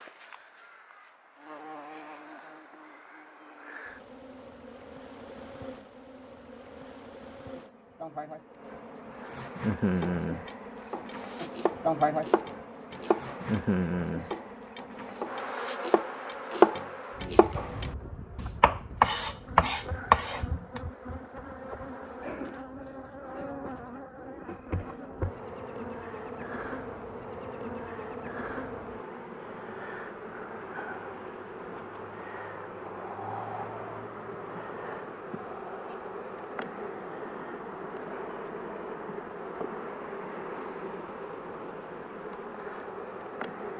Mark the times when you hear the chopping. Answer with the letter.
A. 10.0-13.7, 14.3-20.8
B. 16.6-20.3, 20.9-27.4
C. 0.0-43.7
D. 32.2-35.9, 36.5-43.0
A.